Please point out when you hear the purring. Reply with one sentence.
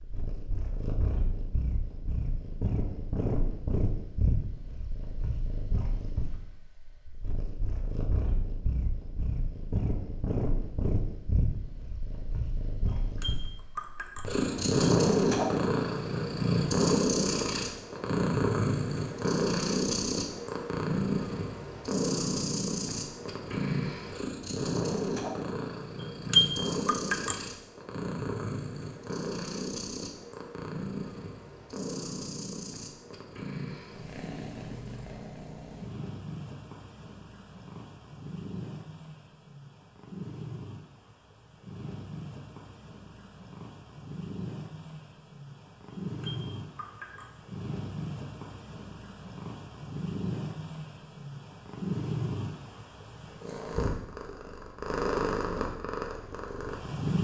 You can hear the purring from 0.0 to 57.1 s.